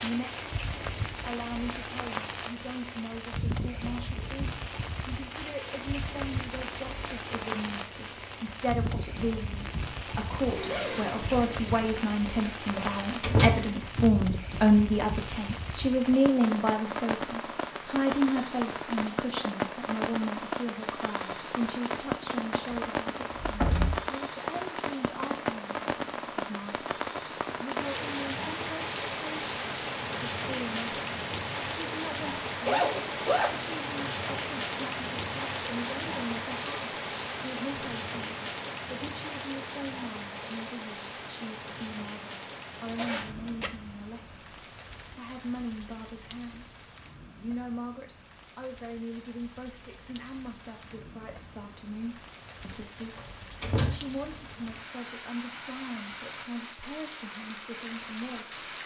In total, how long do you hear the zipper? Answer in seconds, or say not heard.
3 s.